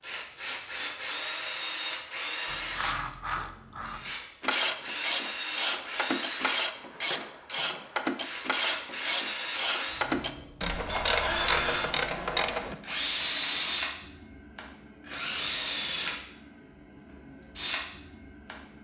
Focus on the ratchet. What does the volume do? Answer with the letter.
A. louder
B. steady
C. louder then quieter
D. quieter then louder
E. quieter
B.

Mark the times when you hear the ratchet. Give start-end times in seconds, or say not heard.
2.5-12.8.